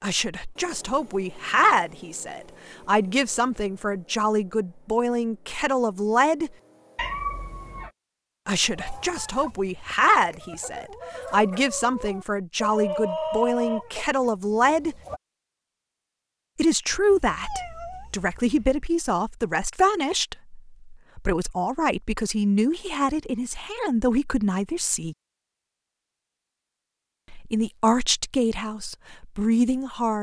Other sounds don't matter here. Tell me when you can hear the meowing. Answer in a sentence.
The meowing can be heard from 7.0 to 7.9 s and from 17.1 to 18.9 s.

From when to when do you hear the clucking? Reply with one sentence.
You can hear the clucking from 8.6 to 15.2 s.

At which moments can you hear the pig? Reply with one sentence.
The pig can't be heard in this clip.